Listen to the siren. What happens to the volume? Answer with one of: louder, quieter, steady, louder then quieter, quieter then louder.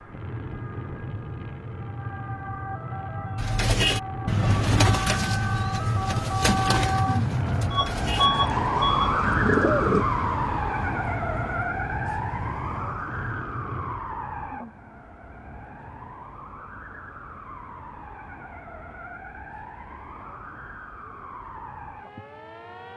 louder then quieter.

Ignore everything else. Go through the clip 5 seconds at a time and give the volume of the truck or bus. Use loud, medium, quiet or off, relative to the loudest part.
medium, loud, medium, off, off.